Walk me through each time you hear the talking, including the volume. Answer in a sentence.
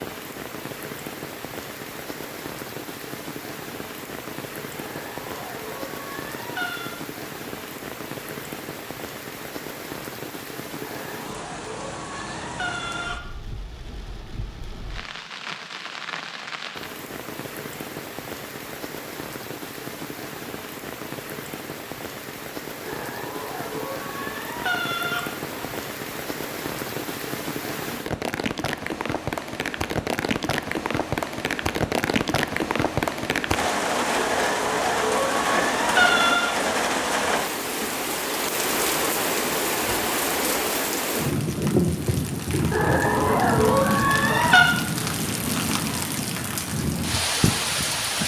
The talking can't be heard in this clip.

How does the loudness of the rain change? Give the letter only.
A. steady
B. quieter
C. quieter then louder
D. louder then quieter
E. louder
E.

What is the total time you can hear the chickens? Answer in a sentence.
The chickens can be heard for 12 seconds in total.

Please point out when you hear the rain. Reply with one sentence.
You can hear the rain from 0.0 to 48.2 s.